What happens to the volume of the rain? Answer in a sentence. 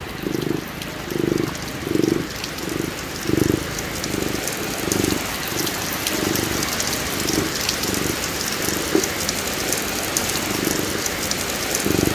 The loudness of the rain goes up.